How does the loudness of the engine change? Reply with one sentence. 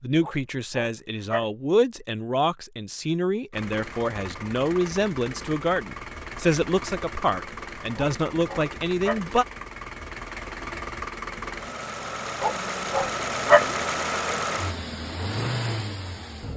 The volume of the engine goes up.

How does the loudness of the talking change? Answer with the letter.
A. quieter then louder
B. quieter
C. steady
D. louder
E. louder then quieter
C.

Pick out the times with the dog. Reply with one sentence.
The dog can be heard from 0.2 to 1.4 s, from 8.0 to 9.2 s and from 12.4 to 13.7 s.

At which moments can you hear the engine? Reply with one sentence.
The engine can be heard from 3.5 to 16.5 s.